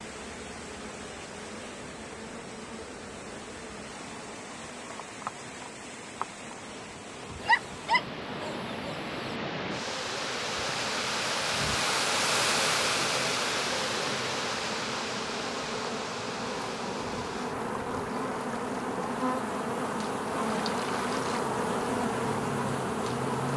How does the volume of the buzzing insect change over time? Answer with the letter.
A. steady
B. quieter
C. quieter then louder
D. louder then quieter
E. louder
E.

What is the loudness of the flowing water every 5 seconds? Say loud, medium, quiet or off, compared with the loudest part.
quiet, medium, loud, medium, medium.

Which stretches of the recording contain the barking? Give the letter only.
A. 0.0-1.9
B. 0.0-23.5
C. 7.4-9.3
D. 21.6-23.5
C.